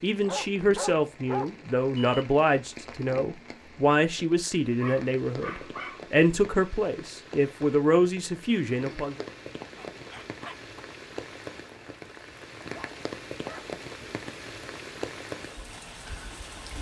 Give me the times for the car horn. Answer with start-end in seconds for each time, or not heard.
not heard.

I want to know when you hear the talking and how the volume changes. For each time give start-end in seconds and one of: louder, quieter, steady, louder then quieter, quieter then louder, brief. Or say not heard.
0.0-9.2 steady.